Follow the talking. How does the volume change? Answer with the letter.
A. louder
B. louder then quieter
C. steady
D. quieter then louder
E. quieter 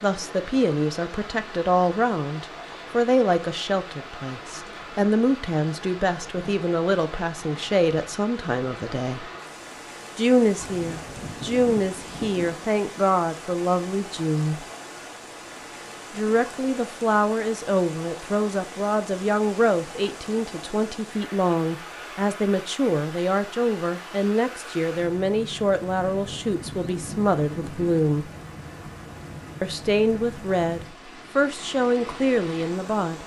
C.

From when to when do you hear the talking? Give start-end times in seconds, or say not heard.
0.0-9.3, 10.2-14.7, 16.1-28.3, 29.6-33.2.